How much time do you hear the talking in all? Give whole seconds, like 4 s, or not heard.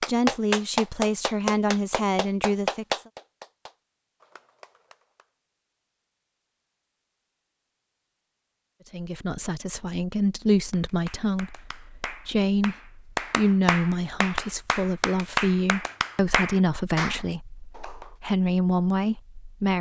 14 s.